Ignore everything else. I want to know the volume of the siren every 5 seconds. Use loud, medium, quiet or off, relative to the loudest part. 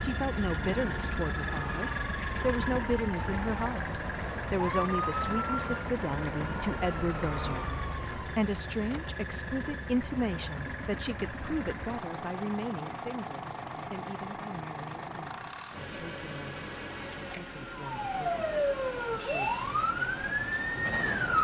medium, medium, off, loud, loud.